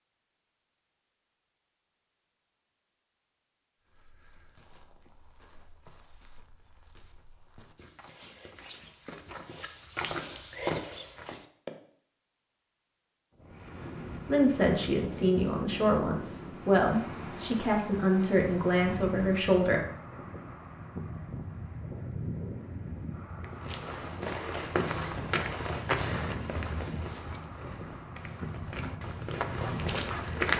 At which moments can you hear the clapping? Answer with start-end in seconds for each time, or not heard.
not heard.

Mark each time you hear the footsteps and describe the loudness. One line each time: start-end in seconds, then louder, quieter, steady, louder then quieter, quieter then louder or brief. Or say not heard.
3.9-11.8 louder
23.4-30.5 quieter then louder.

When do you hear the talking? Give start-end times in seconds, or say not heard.
14.2-19.8.